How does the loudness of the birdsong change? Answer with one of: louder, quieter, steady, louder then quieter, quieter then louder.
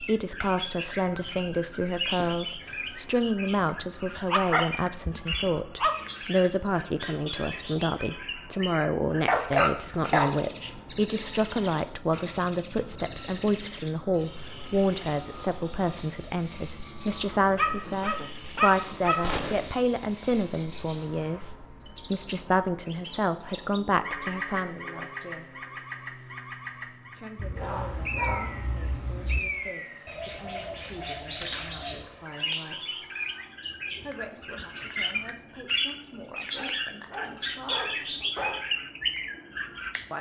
quieter then louder.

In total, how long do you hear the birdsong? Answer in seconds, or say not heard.
40 s.